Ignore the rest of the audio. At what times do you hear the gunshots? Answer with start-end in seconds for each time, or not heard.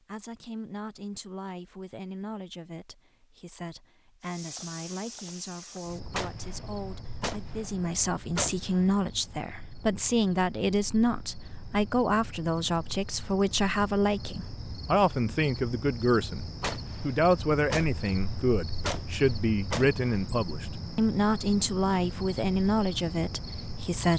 6.1-8.8, 16.6-20.0.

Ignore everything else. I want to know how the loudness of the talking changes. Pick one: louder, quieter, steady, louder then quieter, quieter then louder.
louder.